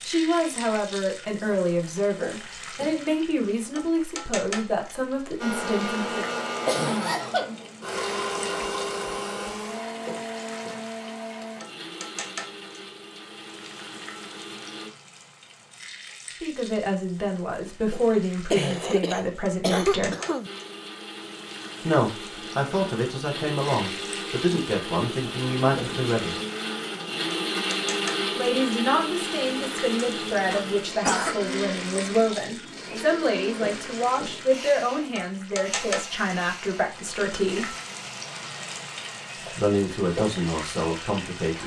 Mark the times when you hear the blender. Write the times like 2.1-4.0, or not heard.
5.3-14.9, 20.4-41.6.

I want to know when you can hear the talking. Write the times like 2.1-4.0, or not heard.
0.1-6.3, 16.4-20.1, 21.8-26.4, 28.4-37.8, 39.5-41.6.